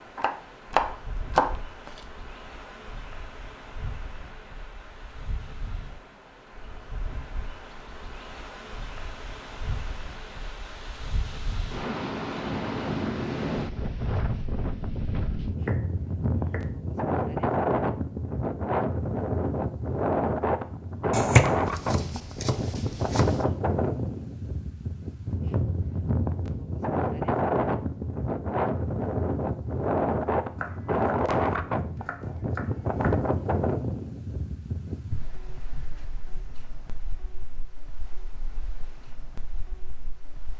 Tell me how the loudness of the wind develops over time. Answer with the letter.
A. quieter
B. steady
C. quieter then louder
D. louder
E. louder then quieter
E.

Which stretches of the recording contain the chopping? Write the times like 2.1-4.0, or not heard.
0.1-2.0, 15.6-16.7, 21.1-23.5, 30.6-33.3.